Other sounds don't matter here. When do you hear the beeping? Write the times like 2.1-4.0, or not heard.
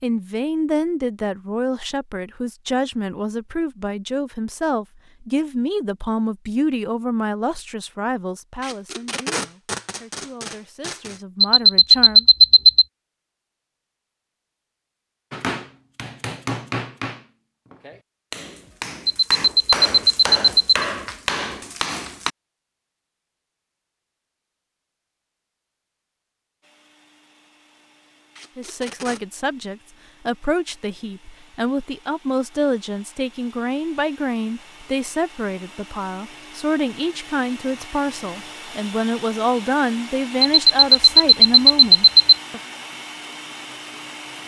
11.4-12.8, 19.1-20.9, 40.4-42.4.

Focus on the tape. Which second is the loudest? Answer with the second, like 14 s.
9 s.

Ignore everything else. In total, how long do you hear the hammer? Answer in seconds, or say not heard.
7 s.